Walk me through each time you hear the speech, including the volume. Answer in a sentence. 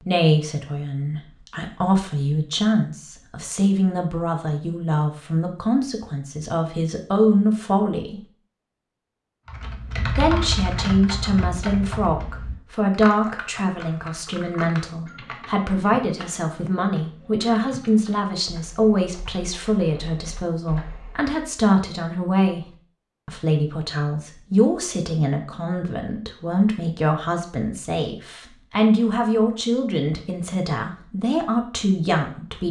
The speech can be heard from 0.0 to 8.2 s, getting louder; and from 10.1 to 32.6 s, at a steady volume.